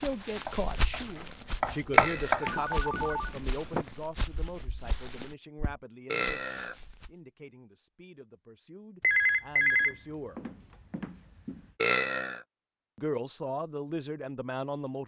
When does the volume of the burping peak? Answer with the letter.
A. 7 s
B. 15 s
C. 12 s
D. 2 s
C.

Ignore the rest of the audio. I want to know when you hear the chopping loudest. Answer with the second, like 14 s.
2 s.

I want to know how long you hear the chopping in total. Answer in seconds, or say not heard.
3 s.